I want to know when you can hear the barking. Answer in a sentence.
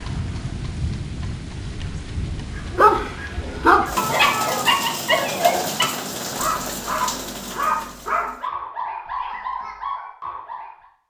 You can hear the barking from 2.8 to 10.8 s.